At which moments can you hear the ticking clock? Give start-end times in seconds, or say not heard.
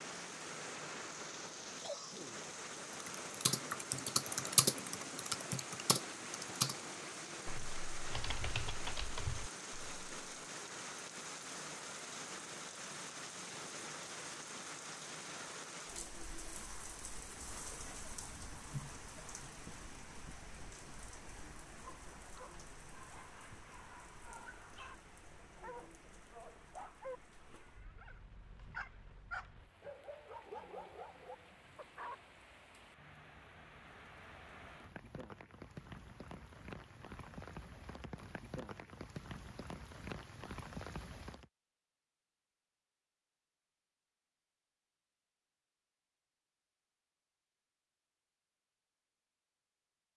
not heard.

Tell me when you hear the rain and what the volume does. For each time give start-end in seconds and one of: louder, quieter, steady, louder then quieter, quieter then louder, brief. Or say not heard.
0.0-41.5 quieter then louder.